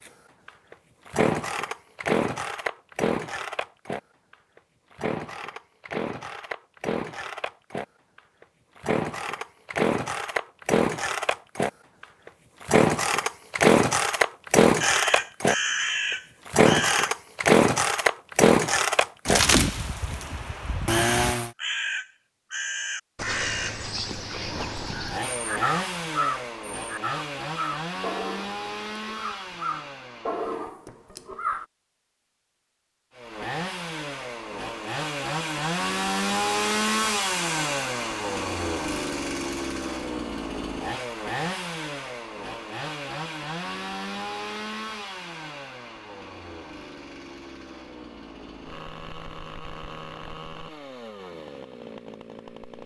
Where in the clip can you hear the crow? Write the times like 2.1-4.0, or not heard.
14.8-17.1, 20.9-31.6.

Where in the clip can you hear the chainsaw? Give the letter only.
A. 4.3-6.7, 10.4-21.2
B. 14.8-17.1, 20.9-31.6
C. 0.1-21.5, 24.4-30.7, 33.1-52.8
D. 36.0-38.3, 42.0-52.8
C.